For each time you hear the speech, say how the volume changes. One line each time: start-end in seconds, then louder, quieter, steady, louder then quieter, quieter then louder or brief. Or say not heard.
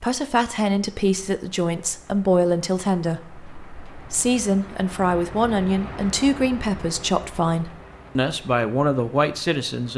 0.0-9.9 steady.